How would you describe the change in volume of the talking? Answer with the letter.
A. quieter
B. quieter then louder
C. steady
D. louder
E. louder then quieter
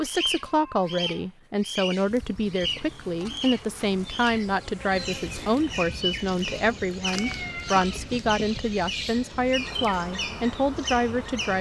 C.